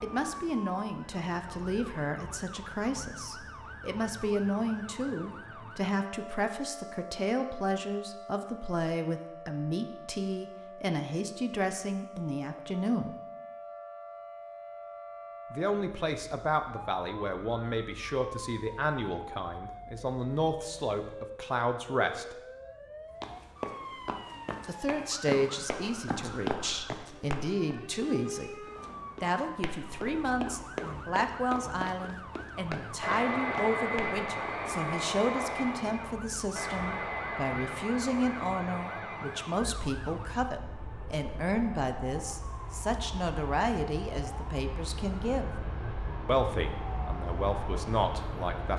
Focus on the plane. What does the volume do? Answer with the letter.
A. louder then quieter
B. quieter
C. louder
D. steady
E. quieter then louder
E.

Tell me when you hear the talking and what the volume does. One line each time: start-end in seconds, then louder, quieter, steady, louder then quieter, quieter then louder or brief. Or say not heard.
0.0-13.2 steady
15.5-22.4 steady
24.6-45.5 steady
46.2-48.7 brief.